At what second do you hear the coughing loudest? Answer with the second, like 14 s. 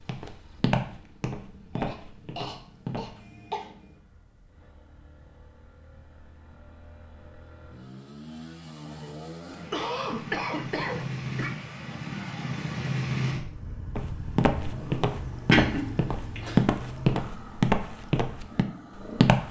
16 s.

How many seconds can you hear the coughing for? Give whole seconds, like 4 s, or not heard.
5 s.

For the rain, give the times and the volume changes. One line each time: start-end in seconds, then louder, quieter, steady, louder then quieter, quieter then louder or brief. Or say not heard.
not heard.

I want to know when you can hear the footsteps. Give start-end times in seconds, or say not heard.
0.0-3.1, 13.9-19.4.